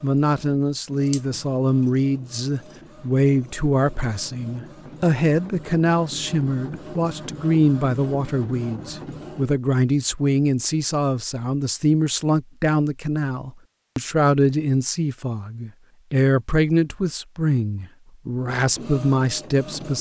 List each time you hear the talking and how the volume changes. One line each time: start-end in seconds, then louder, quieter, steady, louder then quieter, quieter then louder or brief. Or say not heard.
0.0-19.9 steady.